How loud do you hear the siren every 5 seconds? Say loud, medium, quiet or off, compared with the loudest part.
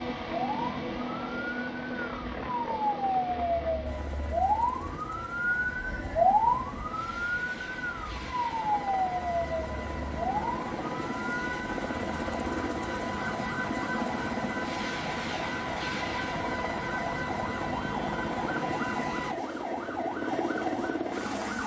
loud, loud, medium, medium, medium.